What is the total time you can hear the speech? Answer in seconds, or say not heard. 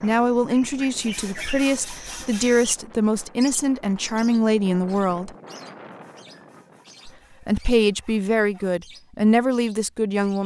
9 s.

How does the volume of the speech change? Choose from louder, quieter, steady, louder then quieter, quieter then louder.
steady.